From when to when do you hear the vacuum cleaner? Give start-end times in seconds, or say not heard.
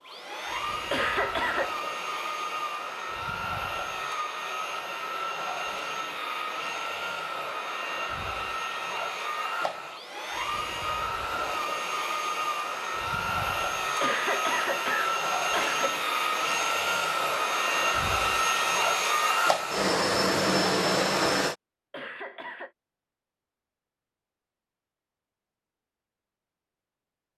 0.0-21.6.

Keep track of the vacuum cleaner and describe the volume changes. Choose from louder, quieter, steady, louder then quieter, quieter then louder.
louder.